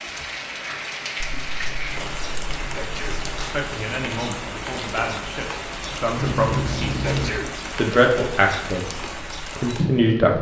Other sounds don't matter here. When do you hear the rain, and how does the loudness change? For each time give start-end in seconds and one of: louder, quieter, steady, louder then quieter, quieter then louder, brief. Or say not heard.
0.0-10.3 steady.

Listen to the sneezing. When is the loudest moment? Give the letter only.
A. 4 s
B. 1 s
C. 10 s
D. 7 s
D.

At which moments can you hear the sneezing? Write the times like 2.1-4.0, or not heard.
2.7-3.2, 7.0-7.5.